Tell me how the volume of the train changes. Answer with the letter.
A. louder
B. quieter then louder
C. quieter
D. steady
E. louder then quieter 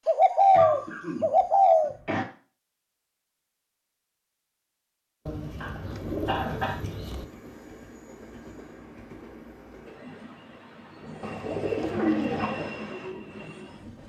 A.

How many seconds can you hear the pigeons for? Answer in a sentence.
You can hear the pigeons for 5 seconds altogether.